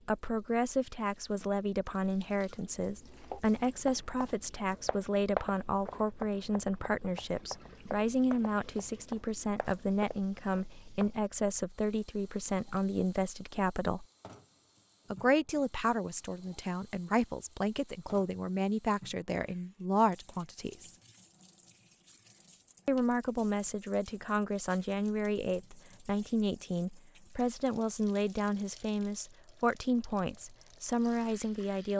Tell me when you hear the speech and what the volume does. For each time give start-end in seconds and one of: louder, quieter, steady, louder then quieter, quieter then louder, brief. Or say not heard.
0.1-14.1 steady
15.1-20.9 steady
22.9-31.9 steady.